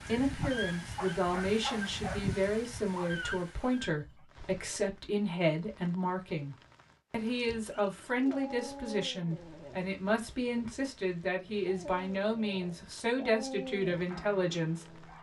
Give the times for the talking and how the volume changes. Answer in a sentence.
You can hear the talking from 0.1 to 15.1 s, at a steady volume.